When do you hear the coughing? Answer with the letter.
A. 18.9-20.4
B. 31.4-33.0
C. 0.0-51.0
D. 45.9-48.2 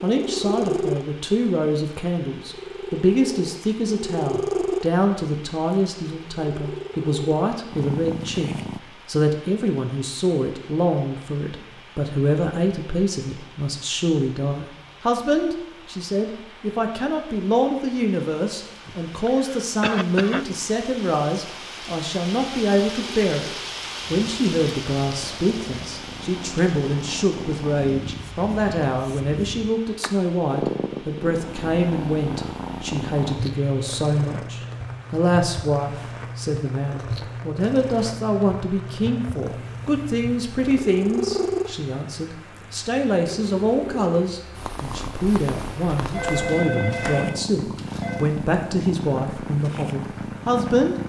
A.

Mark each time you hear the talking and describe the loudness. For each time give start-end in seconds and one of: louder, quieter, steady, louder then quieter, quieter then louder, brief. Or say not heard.
0.0-51.0 steady.